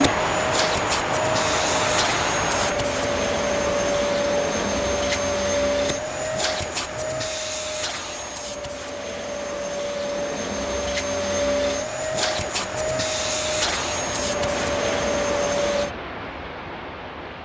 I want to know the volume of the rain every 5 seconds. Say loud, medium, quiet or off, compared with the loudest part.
loud, quiet, medium, medium.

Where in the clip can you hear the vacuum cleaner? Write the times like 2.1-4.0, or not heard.
0.0-15.9.